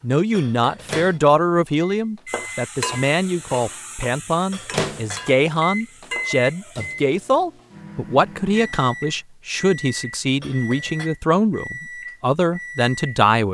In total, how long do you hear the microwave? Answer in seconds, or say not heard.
13 s.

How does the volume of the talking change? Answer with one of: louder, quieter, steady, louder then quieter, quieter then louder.
steady.